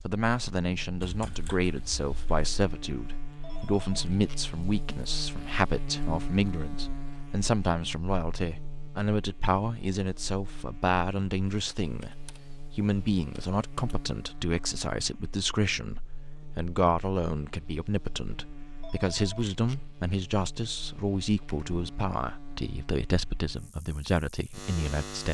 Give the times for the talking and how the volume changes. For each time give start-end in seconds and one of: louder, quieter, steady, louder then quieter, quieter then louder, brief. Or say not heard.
0.0-25.2 steady.